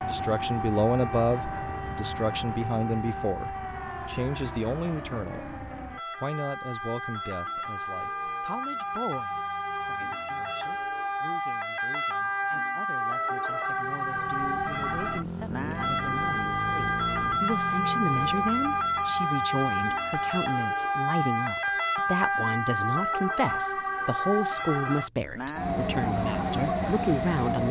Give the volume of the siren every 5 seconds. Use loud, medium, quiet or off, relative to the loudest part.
medium, medium, loud, loud, loud, loud.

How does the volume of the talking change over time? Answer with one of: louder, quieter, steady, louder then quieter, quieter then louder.
quieter then louder.